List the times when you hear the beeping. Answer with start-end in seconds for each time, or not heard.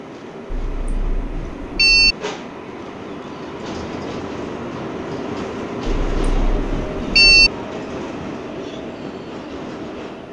0.5-2.1, 5.8-7.5.